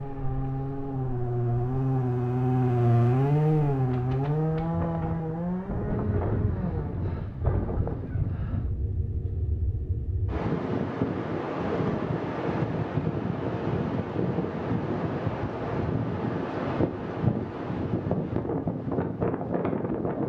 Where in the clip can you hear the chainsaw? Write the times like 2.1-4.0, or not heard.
0.0-6.9.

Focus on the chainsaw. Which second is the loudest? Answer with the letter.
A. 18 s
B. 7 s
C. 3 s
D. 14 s
C.